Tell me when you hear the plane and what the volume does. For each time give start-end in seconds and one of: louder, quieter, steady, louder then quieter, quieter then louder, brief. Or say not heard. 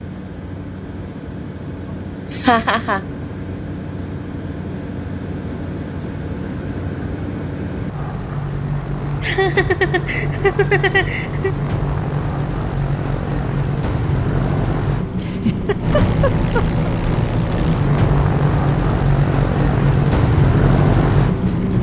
0.0-21.7 louder.